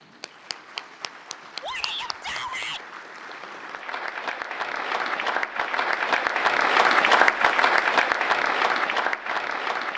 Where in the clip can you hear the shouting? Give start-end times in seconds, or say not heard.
1.6-2.9.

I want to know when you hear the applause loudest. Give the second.
7 s.